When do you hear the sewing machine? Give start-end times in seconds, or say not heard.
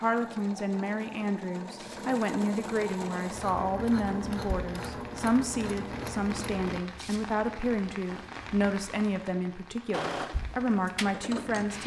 0.0-6.8, 9.9-11.8.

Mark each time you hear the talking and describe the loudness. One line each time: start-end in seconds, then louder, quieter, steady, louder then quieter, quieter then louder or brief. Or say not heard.
0.0-11.8 steady.